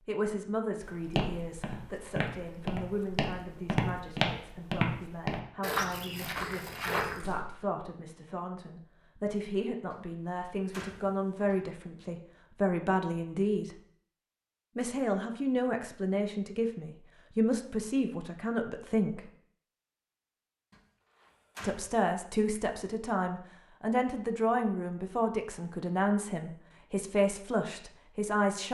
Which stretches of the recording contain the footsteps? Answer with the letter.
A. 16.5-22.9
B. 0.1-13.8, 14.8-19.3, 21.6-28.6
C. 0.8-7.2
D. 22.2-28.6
C.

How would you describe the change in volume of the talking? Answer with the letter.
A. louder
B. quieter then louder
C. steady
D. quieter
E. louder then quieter
A.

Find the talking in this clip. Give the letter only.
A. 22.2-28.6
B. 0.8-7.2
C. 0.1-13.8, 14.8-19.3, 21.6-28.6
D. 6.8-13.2
C.